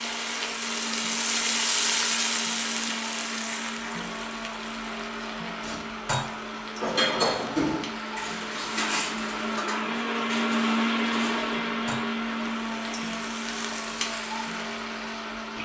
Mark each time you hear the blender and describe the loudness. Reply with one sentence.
The blender can be heard from 0.0 to 15.6 s, getting louder then quieter.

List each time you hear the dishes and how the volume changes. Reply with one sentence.
You can hear the dishes from 5.6 to 12.1 s, getting quieter.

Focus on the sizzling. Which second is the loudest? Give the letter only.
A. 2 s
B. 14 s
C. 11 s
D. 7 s
A.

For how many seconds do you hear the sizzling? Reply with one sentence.
You can hear the sizzling for 14 seconds altogether.